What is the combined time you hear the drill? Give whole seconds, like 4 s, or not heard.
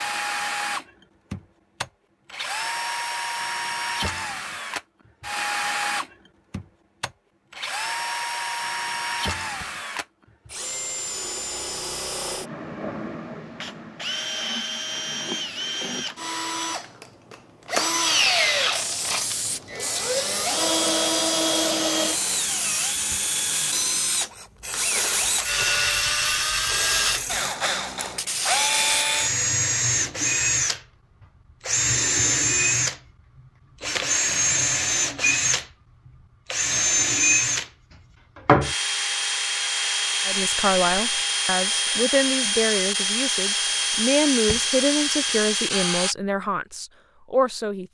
46 s.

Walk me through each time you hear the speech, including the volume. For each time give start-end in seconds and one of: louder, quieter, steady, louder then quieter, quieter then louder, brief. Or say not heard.
40.2-47.8 steady.